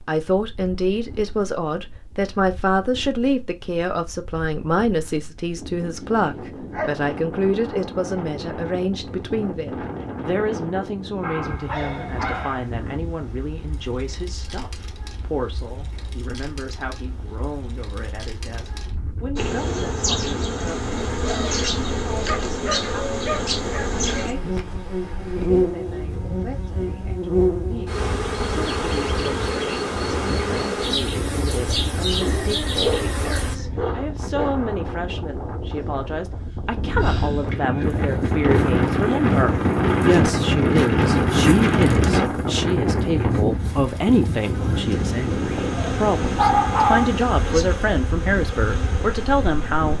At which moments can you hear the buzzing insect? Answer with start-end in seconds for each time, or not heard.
19.4-33.5, 37.8-49.9.